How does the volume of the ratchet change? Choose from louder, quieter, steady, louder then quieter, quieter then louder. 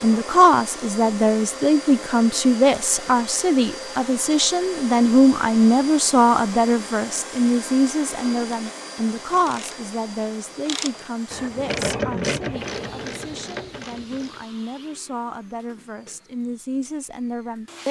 louder then quieter.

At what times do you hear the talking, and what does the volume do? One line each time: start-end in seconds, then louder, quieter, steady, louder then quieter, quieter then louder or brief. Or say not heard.
0.0-17.8 quieter.